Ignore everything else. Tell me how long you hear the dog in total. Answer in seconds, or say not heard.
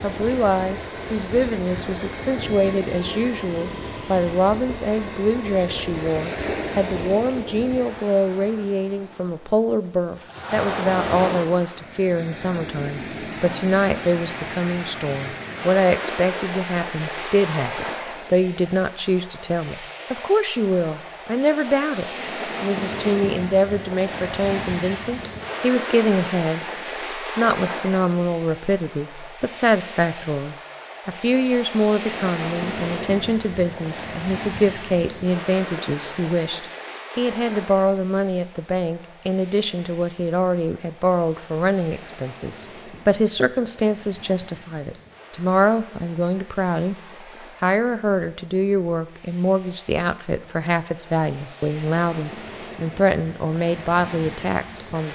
not heard.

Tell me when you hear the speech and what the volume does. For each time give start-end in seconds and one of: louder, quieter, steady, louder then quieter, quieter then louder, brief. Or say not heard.
0.0-47.0 steady
47.6-55.1 steady.